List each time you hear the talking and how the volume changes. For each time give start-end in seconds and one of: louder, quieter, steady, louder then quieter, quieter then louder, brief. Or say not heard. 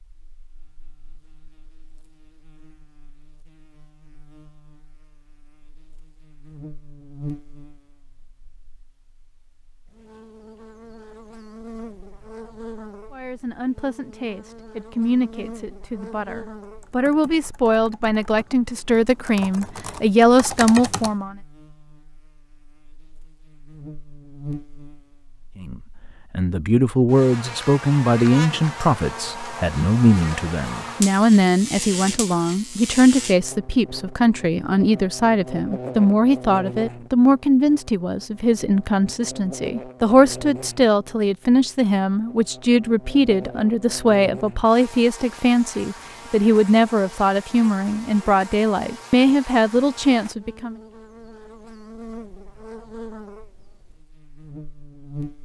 13.1-21.4 louder
25.6-50.8 steady.